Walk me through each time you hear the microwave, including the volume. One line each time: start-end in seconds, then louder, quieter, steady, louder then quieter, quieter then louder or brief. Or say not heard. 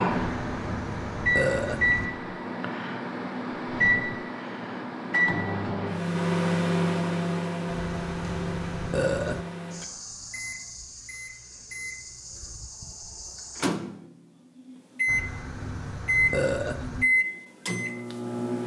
0.0-18.6 quieter then louder.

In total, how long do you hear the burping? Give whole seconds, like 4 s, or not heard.
6 s.